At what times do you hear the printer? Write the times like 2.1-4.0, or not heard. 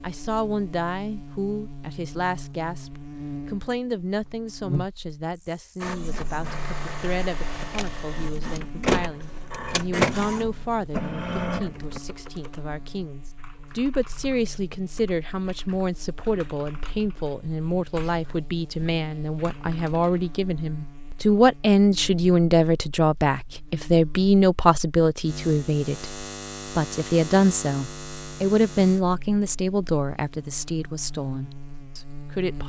5.8-12.0.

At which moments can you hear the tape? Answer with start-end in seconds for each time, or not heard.
not heard.